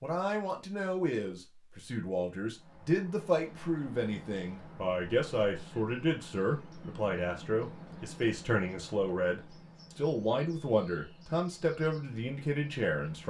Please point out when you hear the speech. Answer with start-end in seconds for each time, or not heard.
0.0-13.2.